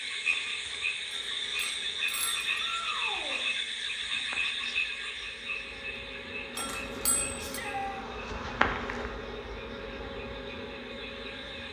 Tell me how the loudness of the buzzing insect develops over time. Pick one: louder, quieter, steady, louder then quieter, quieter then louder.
louder then quieter.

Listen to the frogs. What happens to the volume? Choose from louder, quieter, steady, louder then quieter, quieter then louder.
quieter.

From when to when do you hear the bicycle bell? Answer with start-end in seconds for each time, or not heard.
1.1-2.6, 6.5-7.6.